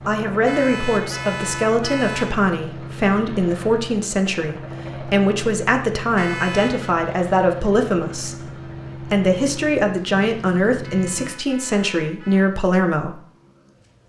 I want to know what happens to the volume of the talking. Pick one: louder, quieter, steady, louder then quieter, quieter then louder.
steady.